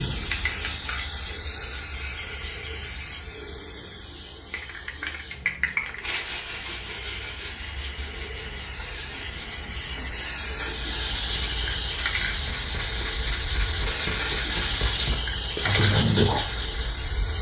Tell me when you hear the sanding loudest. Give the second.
16 s.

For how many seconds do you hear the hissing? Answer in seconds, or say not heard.
17 s.